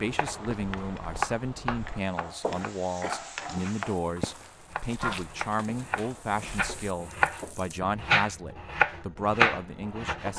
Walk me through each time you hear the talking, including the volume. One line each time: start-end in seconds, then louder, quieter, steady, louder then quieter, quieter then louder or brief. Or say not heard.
0.0-10.3 steady.